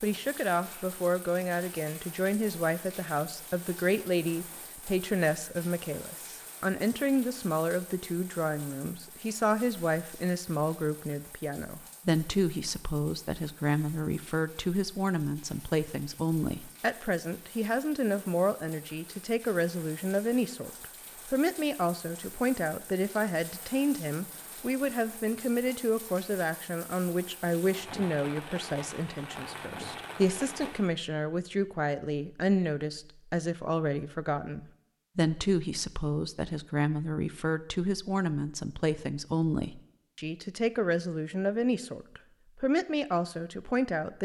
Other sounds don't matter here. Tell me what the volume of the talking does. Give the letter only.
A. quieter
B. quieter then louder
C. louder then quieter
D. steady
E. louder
D.